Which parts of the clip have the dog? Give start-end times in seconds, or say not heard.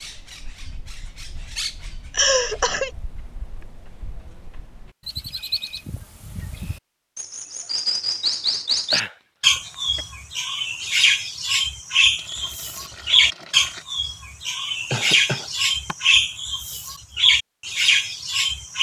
not heard.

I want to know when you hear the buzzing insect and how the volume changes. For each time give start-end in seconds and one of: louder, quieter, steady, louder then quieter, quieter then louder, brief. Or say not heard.
not heard.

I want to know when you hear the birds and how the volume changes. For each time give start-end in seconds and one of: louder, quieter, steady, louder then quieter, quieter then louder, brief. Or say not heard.
0.0-18.7 louder.